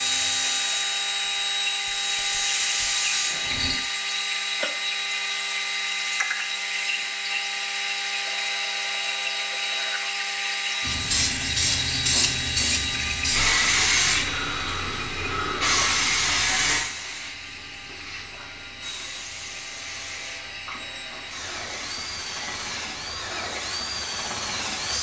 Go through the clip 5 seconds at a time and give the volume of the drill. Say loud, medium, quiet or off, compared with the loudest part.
loud, loud, loud, medium, medium.